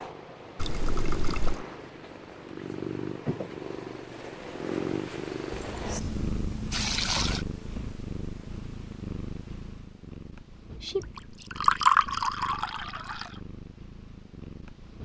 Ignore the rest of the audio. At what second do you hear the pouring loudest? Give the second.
12 s.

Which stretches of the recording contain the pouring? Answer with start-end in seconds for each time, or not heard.
0.6-1.6, 5.5-7.5, 11.6-13.2.